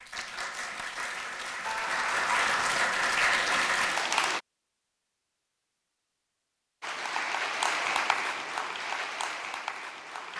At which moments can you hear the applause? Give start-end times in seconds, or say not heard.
0.0-4.4, 6.8-10.3.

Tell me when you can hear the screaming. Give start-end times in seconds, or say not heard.
1.6-2.8.